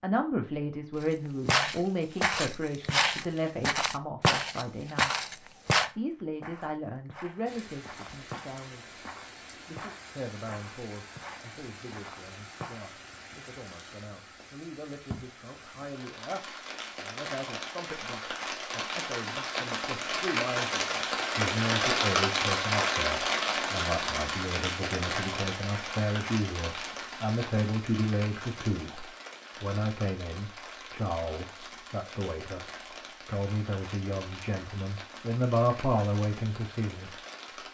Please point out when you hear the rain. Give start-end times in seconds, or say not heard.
7.5-37.7.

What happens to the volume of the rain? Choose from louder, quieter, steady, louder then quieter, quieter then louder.
louder then quieter.